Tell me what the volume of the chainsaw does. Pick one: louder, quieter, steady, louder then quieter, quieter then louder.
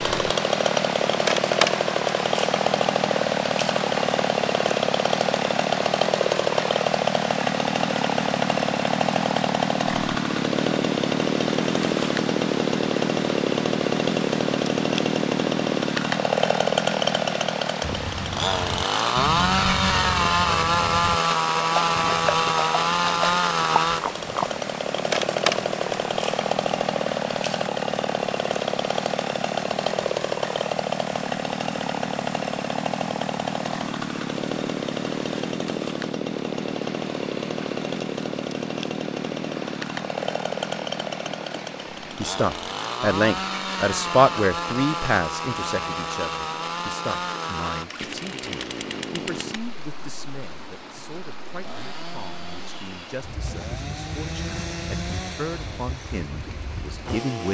quieter.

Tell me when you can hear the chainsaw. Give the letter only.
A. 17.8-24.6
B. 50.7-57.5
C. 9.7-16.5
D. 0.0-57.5
D.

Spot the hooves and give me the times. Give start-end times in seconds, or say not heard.
17.8-24.6.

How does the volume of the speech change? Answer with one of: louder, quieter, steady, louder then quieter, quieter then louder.
quieter then louder.